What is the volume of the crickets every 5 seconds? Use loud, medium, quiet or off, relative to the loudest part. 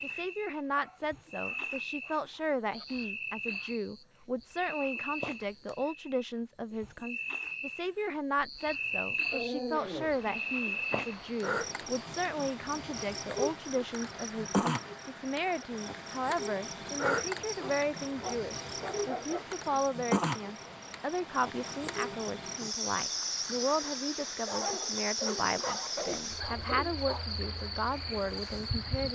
medium, loud, loud, loud, loud, loud.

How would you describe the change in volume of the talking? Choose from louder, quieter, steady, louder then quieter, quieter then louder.
steady.